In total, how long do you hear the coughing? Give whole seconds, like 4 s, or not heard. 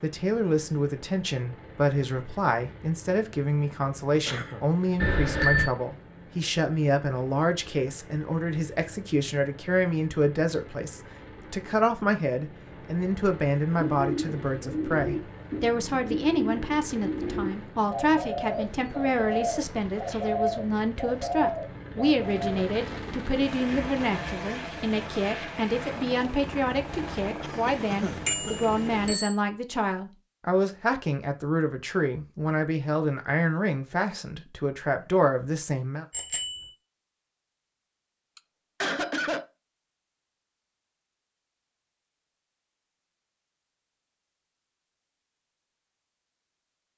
3 s.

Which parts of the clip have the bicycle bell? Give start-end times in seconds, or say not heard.
5.0-5.7, 28.2-29.4, 36.1-36.7.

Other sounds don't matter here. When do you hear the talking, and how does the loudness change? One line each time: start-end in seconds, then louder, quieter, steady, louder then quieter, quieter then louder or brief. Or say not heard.
0.0-36.0 steady.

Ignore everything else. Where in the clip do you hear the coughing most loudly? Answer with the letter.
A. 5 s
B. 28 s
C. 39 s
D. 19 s
C.